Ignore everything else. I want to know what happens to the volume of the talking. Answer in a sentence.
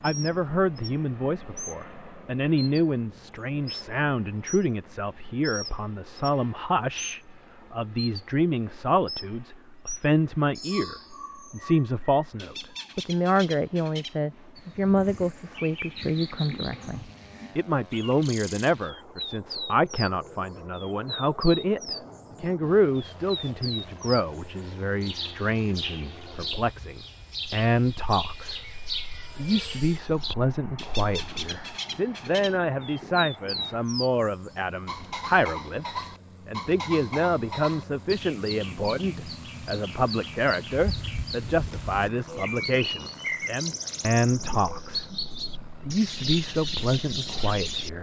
The loudness of the talking stays about the same.